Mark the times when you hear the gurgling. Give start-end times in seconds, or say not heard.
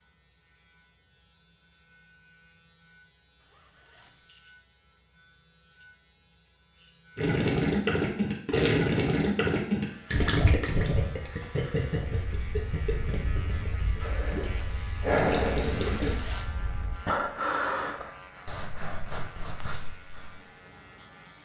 7.2-16.1.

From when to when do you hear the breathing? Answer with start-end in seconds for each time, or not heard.
11.9-20.4.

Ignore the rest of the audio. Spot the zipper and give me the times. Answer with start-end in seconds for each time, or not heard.
3.4-4.2, 15.9-16.6.